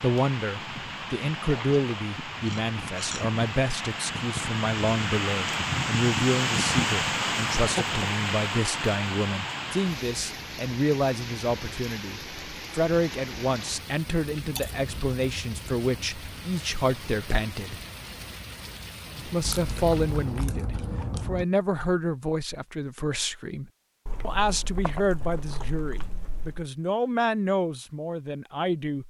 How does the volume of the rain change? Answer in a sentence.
The volume of the rain goes up, then down.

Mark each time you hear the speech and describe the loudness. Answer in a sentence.
You can hear the speech from 0.0 to 17.8 s, at a steady volume; and from 19.2 to 29.0 s, at a steady volume.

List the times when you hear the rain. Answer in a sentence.
The rain can be heard from 0.0 to 20.5 s.